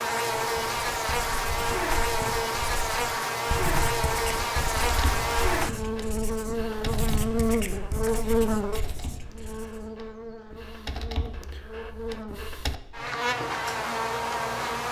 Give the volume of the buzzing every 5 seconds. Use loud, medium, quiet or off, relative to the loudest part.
loud, loud, medium.